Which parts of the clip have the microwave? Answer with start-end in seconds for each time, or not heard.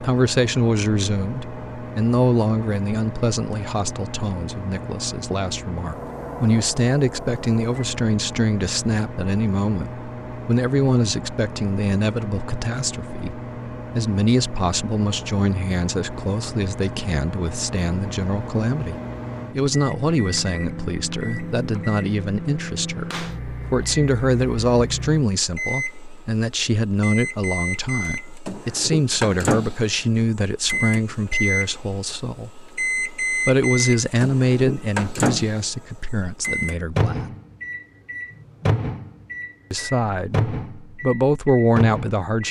0.0-42.2.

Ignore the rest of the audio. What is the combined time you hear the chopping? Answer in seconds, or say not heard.
not heard.